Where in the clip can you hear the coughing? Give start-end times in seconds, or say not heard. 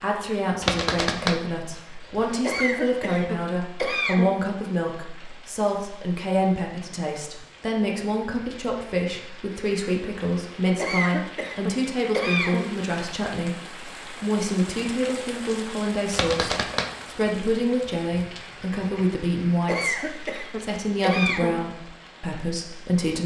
2.4-4.3, 10.8-12.7, 19.6-21.6.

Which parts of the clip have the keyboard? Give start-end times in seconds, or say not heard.
not heard.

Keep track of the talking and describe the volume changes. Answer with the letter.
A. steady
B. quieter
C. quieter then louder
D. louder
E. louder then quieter
A.